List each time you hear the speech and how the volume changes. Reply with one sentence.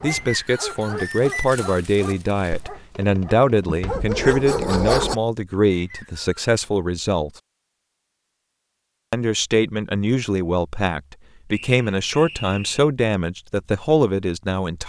You can hear the speech from 0.0 to 7.3 s, at a steady volume; and from 9.1 to 14.8 s, at a steady volume.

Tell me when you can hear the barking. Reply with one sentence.
You can hear the barking from 0.0 to 5.2 s.